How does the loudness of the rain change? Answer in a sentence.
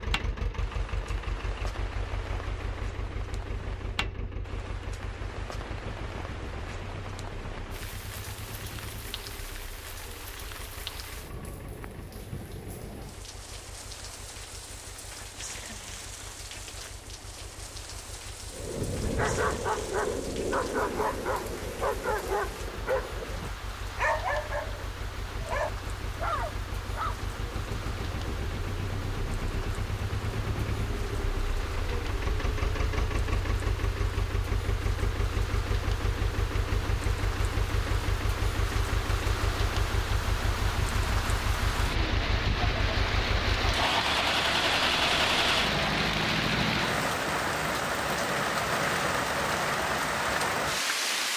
The loudness of the rain goes up.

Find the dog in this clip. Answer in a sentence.
The dog can be heard from 18.5 to 27.1 s.